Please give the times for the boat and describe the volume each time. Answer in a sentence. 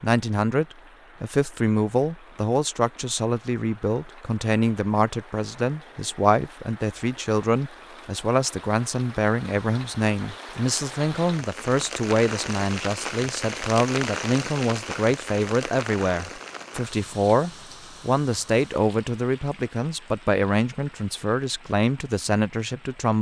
The boat can't be heard in this clip.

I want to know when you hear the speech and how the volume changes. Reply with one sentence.
You can hear the speech from 0.0 to 23.1 s, at a steady volume.